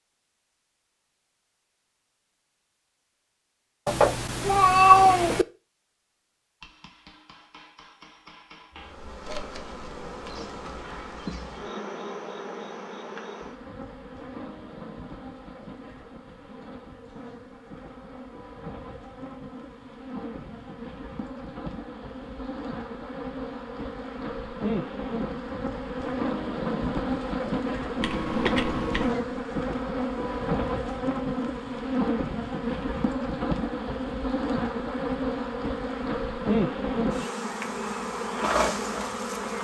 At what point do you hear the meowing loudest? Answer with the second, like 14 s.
5 s.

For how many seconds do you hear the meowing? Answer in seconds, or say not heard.
3 s.